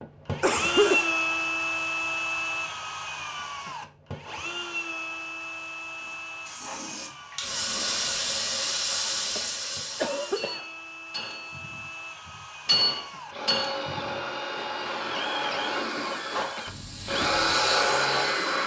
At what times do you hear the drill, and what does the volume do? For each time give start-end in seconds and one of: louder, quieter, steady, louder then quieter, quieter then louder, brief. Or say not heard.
0.0-18.6 quieter then louder.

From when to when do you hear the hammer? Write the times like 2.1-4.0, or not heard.
10.3-17.6.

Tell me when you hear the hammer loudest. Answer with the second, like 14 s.
13 s.